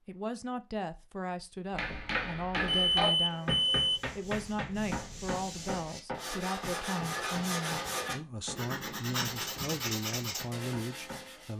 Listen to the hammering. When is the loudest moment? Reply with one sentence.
The volume of the hammering peaks at 3 seconds.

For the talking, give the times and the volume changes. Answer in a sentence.
You can hear the talking from 0.1 to 11.5 s, at a steady volume.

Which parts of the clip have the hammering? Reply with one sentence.
You can hear the hammering from 1.7 to 11.2 s.